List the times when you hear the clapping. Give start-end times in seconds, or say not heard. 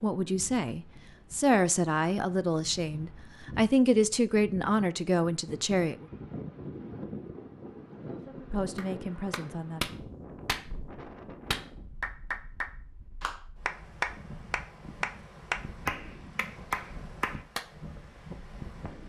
8.8-17.6.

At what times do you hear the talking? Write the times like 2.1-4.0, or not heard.
0.0-6.0, 8.1-9.9.